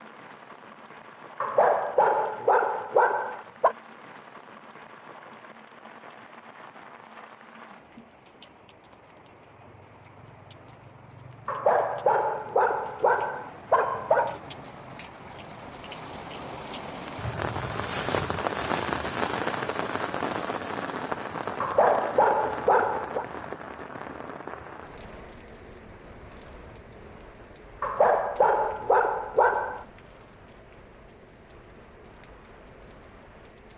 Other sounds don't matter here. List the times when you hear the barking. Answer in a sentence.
You can hear the barking from 1.4 to 3.8 s, from 11.4 to 14.3 s, from 21.6 to 23.2 s and from 27.8 to 29.9 s.